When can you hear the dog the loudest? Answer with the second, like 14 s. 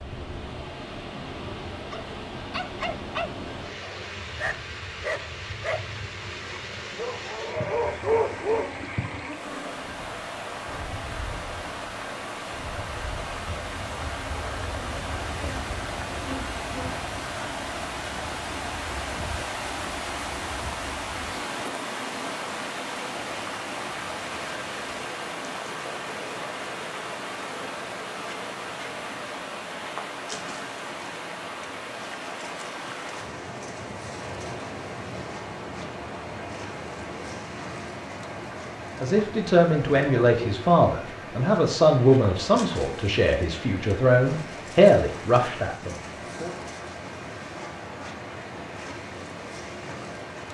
8 s.